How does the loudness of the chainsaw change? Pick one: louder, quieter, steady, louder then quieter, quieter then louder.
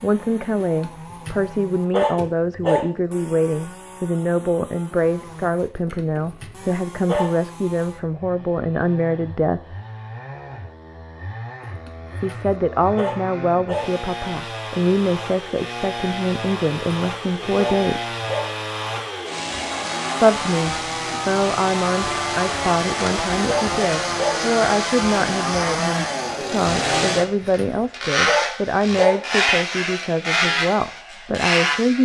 louder.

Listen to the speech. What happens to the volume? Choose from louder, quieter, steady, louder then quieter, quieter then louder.
steady.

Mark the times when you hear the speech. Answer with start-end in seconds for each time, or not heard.
0.0-9.8, 12.2-18.1, 20.2-31.9.